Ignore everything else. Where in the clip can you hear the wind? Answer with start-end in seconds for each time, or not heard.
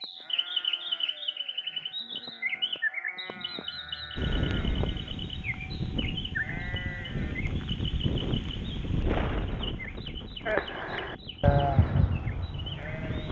4.2-13.2.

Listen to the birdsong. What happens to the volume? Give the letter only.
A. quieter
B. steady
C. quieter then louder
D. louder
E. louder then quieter
A.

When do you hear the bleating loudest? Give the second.
12 s.